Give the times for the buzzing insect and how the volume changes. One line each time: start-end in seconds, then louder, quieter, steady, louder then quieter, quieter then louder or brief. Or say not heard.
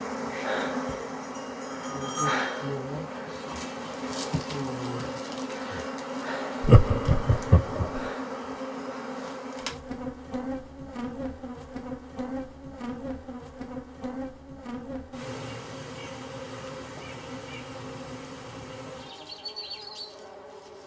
0.0-20.8 quieter.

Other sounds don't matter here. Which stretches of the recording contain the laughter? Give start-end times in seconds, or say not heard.
6.6-8.0.